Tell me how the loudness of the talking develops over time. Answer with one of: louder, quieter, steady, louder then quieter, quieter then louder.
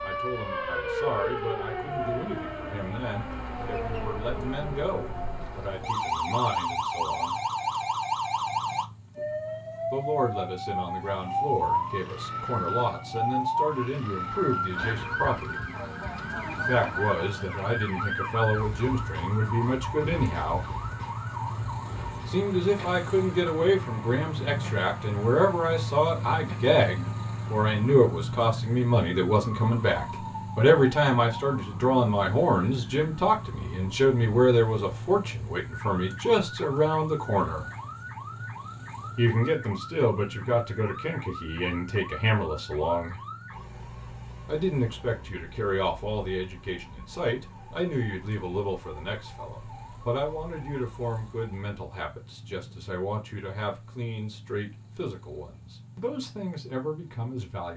louder then quieter.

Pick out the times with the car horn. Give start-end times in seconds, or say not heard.
not heard.